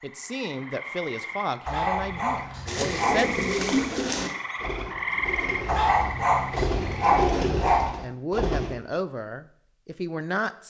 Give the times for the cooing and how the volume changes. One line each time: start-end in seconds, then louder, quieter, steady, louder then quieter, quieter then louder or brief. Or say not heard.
2.6-8.8 quieter then louder.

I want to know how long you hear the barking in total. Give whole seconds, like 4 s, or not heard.
4 s.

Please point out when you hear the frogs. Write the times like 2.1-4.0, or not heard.
0.0-7.1.